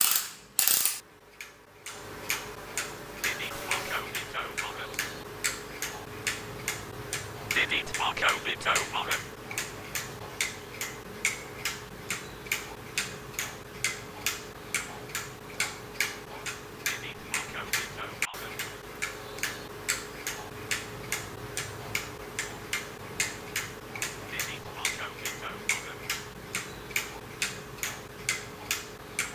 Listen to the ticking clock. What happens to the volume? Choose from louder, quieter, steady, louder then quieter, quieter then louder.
steady.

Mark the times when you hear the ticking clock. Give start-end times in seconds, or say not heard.
0.0-29.3.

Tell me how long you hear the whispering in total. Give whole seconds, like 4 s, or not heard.
7 s.